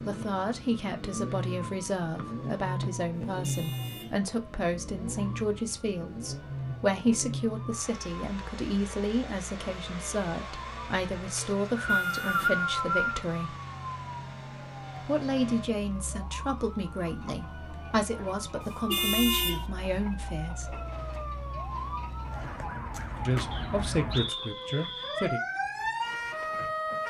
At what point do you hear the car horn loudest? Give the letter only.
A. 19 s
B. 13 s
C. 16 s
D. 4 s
A.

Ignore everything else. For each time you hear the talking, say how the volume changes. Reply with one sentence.
You can hear the talking from 0.1 to 13.6 s, at a steady volume; from 15.1 to 20.9 s, at a steady volume; and briefly from 23.2 to 25.4 s.